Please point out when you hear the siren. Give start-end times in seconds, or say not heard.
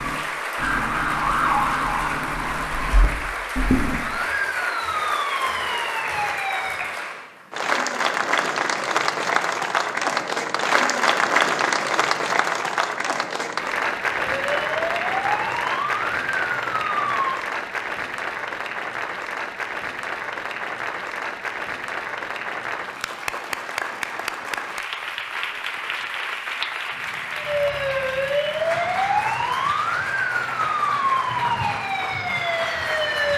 0.0-7.0, 14.2-17.4, 27.4-33.3.